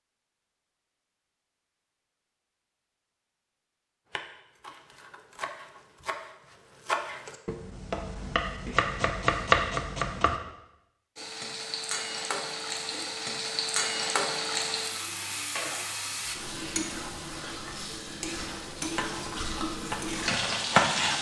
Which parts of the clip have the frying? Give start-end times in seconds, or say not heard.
11.2-21.1.